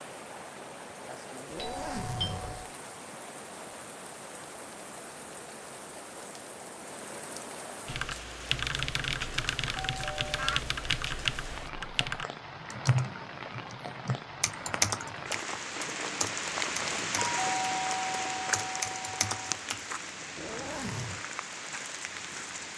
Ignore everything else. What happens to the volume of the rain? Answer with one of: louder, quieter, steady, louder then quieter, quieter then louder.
louder.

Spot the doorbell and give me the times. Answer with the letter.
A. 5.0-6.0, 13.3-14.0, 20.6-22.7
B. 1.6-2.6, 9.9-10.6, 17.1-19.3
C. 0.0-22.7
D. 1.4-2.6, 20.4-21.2
B.